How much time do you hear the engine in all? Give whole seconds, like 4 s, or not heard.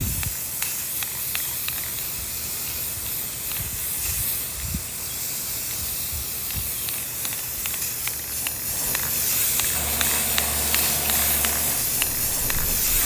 3 s.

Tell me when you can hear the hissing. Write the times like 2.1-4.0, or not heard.
0.0-13.0.